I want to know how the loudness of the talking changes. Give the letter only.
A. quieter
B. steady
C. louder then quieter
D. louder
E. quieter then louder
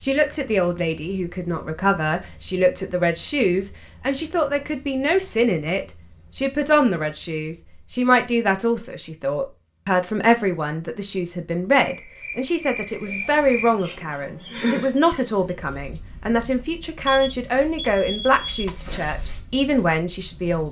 B.